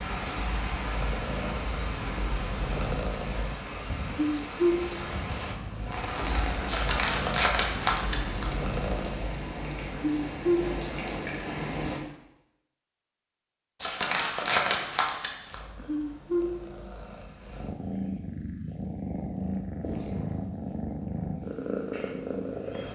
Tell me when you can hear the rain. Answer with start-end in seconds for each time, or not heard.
0.0-12.0.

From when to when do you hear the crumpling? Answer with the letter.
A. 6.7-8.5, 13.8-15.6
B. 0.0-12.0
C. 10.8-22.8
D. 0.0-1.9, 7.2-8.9
A.